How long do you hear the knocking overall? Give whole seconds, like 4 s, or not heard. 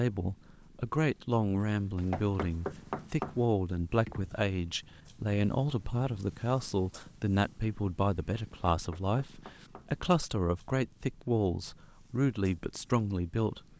3 s.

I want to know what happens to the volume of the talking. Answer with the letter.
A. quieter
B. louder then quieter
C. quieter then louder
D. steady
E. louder
D.